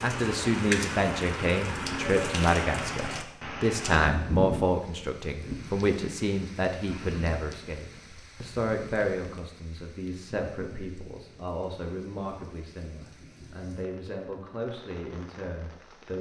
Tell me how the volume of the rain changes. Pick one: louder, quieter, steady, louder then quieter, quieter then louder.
quieter.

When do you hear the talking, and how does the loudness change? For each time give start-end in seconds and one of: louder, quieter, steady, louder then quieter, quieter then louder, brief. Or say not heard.
0.0-16.1 quieter.